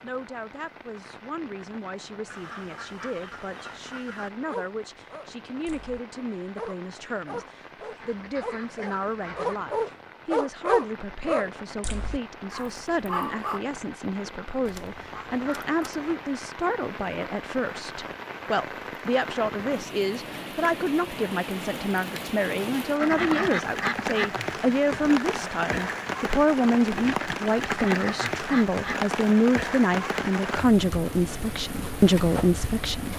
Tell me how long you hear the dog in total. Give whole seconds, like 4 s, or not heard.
9 s.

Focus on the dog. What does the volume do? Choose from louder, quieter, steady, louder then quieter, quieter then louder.
louder then quieter.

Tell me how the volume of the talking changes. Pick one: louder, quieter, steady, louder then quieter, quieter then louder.
louder.